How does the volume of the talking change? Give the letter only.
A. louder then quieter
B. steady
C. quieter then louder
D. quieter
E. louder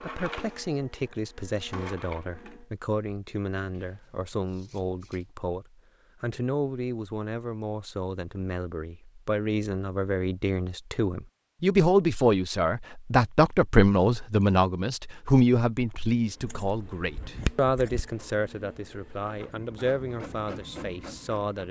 A.